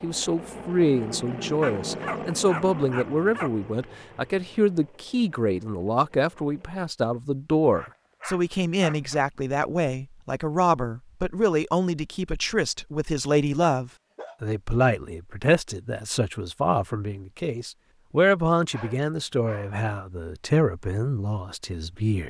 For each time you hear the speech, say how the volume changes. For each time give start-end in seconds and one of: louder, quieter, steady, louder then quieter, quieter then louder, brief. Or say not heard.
0.0-22.2 steady.